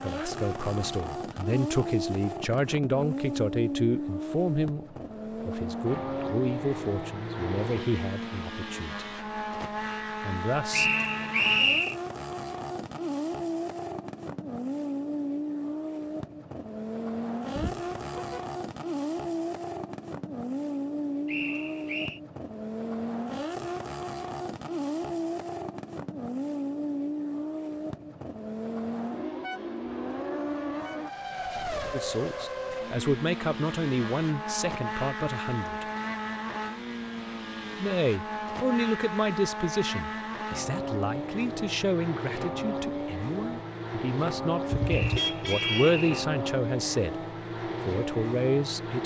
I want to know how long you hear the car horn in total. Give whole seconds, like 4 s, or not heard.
2 s.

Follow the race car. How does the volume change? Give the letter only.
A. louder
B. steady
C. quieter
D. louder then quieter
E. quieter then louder
B.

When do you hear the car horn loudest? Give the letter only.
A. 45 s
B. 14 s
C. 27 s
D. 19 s
A.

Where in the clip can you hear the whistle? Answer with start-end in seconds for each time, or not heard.
10.7-11.9, 21.2-22.2, 44.9-46.2.